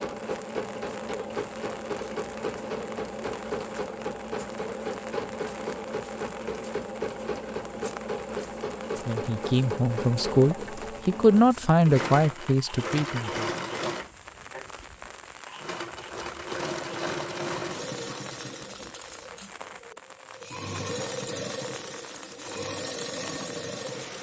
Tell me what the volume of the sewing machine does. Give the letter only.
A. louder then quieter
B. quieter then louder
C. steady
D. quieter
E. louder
C.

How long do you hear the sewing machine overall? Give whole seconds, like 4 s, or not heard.
24 s.